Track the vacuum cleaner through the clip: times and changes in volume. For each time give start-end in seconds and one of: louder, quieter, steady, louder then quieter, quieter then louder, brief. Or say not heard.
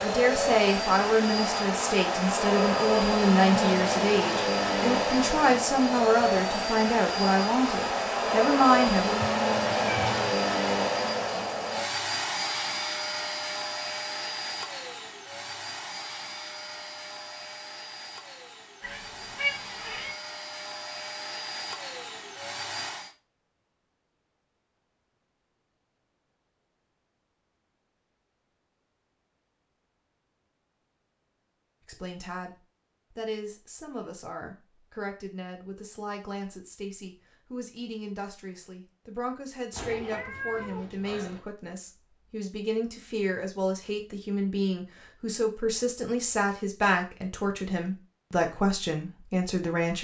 0.0-23.1 quieter.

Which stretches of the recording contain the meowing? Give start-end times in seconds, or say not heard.
9.2-10.3, 18.8-20.1, 39.7-41.4.